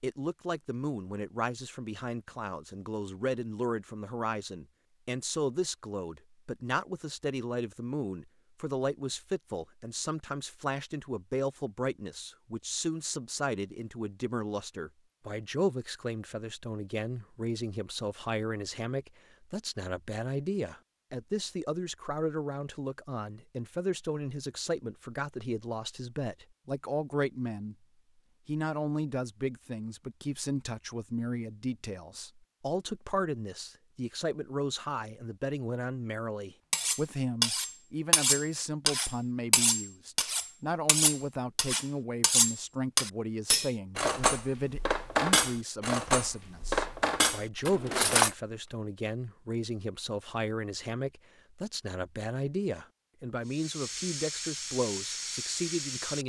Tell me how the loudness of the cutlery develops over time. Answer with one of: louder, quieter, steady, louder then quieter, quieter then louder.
steady.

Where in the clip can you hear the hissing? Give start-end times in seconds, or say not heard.
53.5-56.2.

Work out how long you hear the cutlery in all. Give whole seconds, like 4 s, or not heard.
12 s.